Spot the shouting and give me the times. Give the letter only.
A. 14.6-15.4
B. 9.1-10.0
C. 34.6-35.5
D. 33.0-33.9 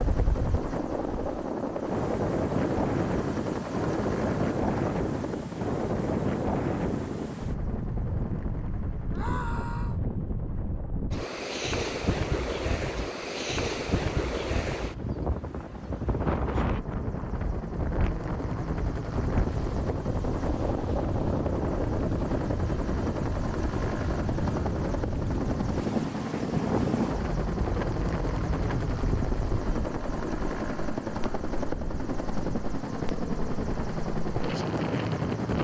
B.